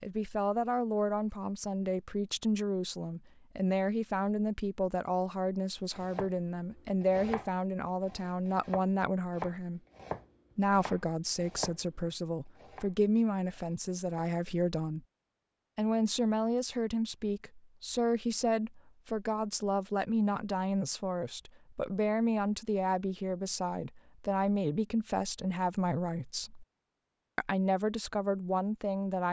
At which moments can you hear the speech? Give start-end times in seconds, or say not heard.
0.0-9.8, 10.6-15.0, 15.8-26.6, 27.4-29.2.